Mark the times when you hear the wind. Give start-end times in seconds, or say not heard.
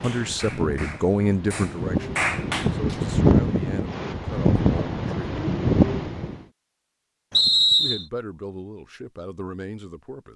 0.0-6.4.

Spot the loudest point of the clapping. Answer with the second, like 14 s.
2 s.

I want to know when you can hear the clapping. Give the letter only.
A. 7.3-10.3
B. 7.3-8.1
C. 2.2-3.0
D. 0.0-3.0
D.